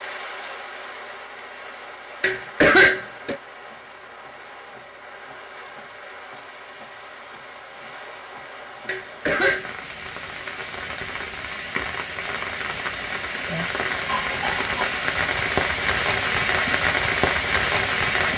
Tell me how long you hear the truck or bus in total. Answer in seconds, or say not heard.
not heard.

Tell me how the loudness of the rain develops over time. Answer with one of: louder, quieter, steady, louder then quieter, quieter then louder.
louder.